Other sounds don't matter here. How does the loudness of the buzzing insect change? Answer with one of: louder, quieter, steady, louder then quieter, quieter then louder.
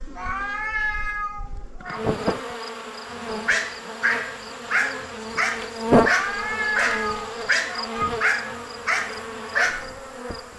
louder then quieter.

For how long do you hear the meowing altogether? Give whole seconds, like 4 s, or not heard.
4 s.